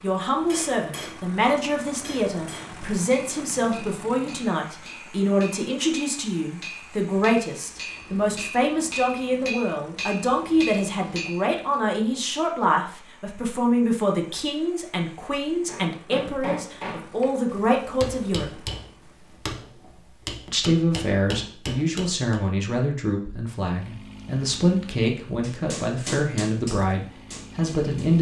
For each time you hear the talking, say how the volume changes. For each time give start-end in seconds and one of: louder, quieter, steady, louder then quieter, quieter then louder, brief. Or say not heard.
0.0-18.6 steady
20.4-28.1 steady.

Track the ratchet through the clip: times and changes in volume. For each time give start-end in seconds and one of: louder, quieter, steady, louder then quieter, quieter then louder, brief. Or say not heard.
not heard.